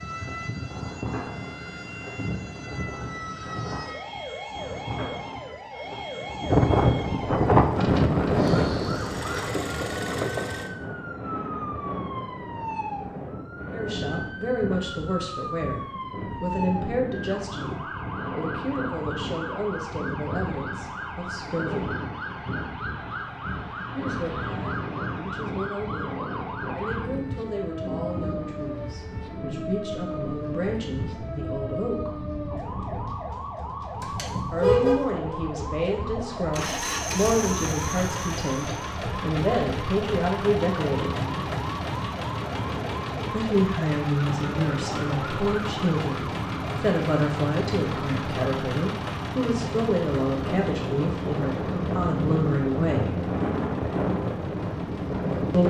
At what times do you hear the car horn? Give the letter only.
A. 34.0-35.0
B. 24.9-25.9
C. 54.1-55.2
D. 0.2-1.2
A.